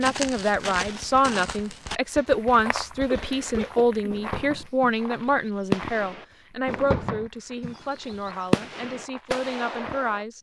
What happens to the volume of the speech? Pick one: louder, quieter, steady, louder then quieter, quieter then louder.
quieter.